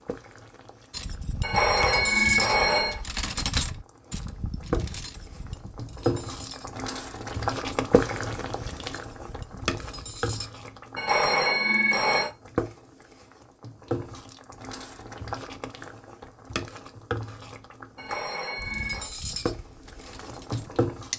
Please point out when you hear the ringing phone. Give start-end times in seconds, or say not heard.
1.4-3.0, 10.9-12.3, 17.9-19.1.